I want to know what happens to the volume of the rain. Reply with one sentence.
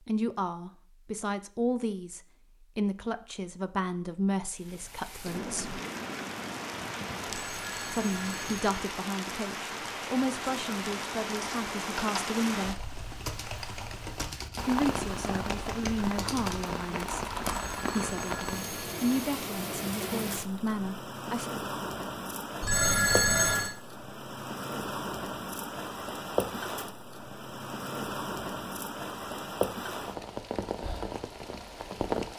The loudness of the rain stays about the same.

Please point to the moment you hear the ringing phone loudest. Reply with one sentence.
The loudest moment of the ringing phone is at 23 seconds.